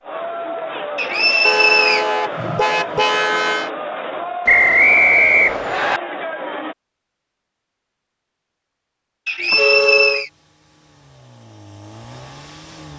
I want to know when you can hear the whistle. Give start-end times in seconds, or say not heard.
0.9-2.0, 4.5-6.0, 9.2-10.3.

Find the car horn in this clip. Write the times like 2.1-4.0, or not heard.
1.4-3.7, 9.5-10.2.